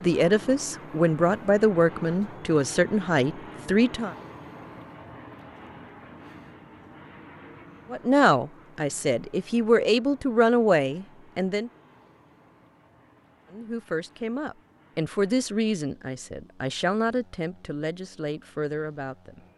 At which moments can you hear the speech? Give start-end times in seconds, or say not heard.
0.0-4.2, 7.9-11.7, 13.5-19.4.